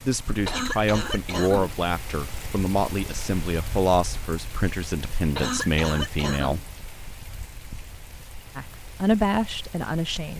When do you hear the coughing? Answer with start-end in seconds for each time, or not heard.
0.5-1.8, 5.3-6.7.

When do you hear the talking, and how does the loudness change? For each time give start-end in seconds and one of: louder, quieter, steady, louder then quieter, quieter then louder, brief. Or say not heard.
0.0-6.6 steady
8.6-10.3 brief.